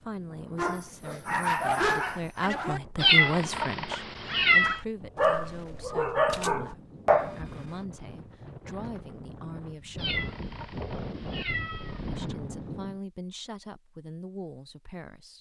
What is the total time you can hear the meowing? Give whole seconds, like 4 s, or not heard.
4 s.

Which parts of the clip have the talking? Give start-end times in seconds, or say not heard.
0.0-10.2, 12.1-15.3.